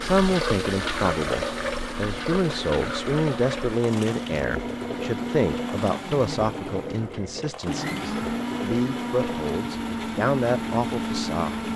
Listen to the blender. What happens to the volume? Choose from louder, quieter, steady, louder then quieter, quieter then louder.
louder.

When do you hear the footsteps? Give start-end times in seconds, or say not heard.
not heard.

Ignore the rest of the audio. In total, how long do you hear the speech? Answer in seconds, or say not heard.
12 s.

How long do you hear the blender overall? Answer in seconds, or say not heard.
12 s.